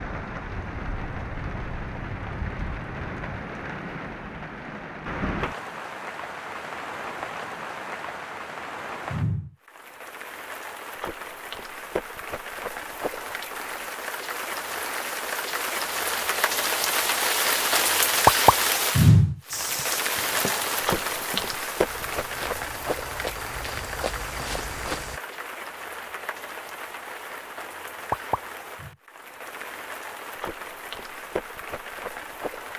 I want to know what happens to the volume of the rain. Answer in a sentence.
The volume of the rain goes up, then down.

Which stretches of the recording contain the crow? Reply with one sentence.
The crow can't be heard in this clip.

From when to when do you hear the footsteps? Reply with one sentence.
You can hear the footsteps from 19.5 to 25.2 s.